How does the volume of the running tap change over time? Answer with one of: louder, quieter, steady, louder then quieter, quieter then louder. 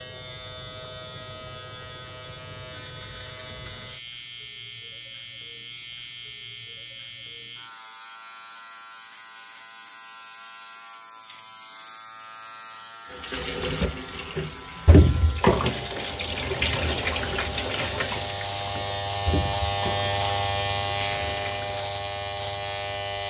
quieter.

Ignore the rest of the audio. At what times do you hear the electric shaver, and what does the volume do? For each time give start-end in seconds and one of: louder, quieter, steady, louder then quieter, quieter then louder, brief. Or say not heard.
0.0-23.2 louder.